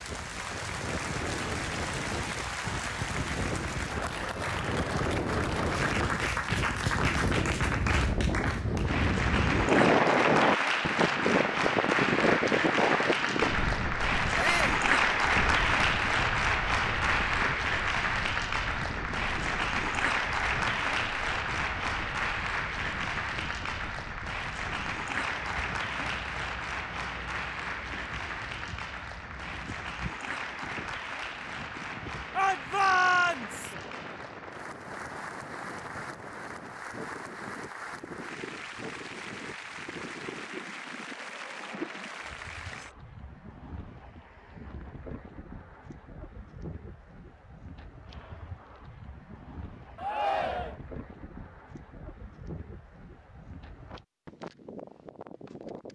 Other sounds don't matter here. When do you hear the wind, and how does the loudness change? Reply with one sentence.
The wind can be heard from 0.0 to 55.9 s, getting quieter.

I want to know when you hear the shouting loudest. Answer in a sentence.
The volume of the shouting peaks at 33 seconds.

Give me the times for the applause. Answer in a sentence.
You can hear the applause from 0.0 to 43.0 s.